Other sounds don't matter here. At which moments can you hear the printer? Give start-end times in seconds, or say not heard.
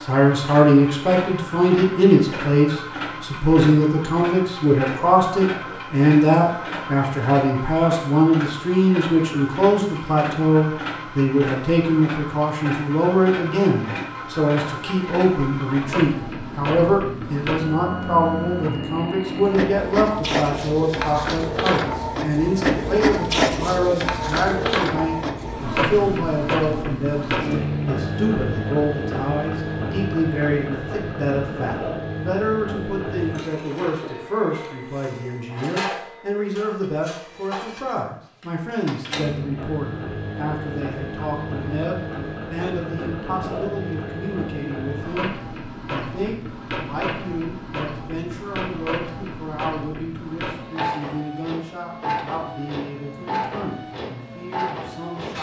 0.0-55.3.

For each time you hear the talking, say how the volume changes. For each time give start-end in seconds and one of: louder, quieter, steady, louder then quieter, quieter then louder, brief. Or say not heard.
0.0-55.3 quieter.